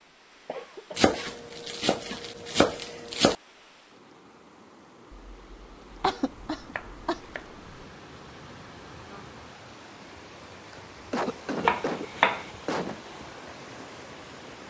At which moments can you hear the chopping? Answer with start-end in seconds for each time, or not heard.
0.9-3.4, 6.2-7.7, 11.7-12.4.